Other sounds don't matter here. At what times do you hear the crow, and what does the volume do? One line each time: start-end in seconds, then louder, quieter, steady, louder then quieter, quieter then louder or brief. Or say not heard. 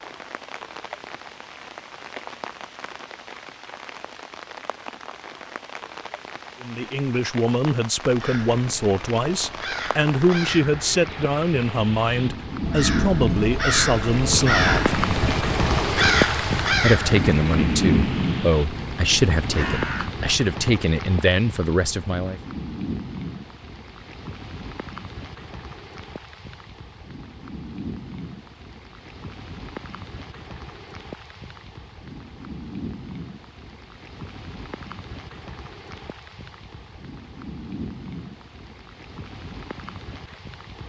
8.2-20.1 louder then quieter.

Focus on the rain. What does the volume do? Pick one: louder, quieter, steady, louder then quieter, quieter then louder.
louder then quieter.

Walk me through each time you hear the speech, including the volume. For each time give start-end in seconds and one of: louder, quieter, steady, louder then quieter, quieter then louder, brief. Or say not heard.
6.6-14.9 steady
16.8-22.4 steady.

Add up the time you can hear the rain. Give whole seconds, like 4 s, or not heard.
41 s.